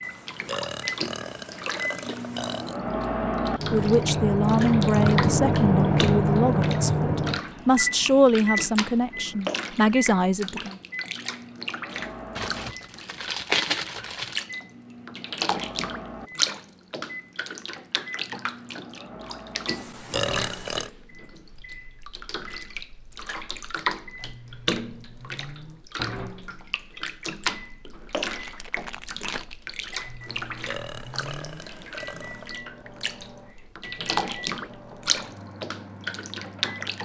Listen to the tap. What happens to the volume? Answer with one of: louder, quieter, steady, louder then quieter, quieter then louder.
steady.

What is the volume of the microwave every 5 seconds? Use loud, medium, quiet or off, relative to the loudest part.
loud, loud, quiet, quiet, quiet, quiet, quiet, quiet.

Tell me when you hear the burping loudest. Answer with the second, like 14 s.
20 s.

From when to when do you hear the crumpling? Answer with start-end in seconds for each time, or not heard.
12.3-14.4, 28.4-29.6.